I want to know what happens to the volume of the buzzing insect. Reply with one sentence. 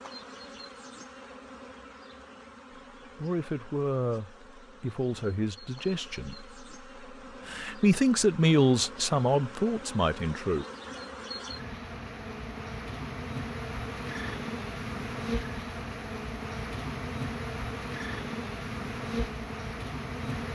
The loudness of the buzzing insect goes up.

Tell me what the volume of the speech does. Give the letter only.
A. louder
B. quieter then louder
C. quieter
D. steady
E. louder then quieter
E.